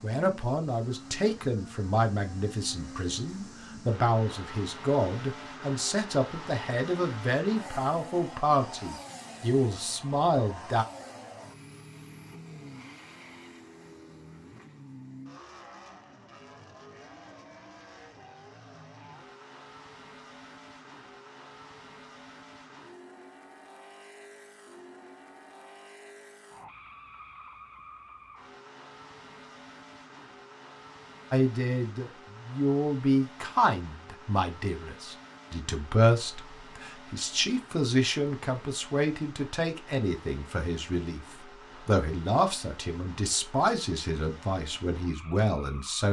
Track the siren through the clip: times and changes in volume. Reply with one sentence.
You can't hear the siren here.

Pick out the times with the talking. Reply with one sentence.
You can hear the talking from 0.0 to 10.8 s and from 31.3 to 46.0 s.